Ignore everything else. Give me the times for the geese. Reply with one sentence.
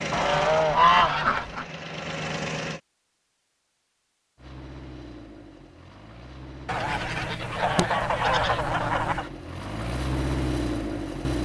The geese can be heard from 0.1 to 1.6 s and from 6.7 to 9.2 s.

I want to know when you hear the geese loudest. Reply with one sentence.
The volume of the geese peaks at 1 second.